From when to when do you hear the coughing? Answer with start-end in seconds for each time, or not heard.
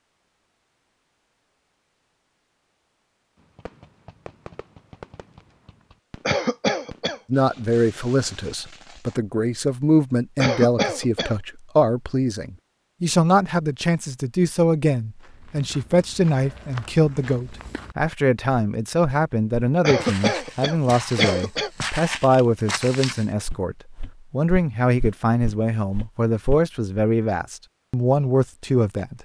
6.2-7.2, 10.3-11.3, 19.8-21.7.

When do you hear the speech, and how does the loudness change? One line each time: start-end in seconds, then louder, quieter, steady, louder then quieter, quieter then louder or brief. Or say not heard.
7.3-29.1 steady.